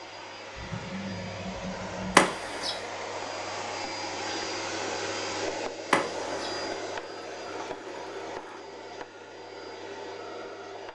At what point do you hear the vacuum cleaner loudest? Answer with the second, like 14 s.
5 s.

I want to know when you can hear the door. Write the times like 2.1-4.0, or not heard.
2.1-2.8, 5.9-6.6.